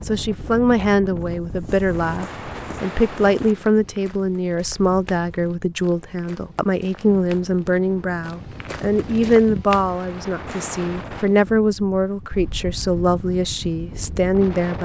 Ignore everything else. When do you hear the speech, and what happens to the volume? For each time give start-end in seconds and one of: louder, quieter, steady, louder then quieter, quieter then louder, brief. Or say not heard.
0.0-14.8 steady.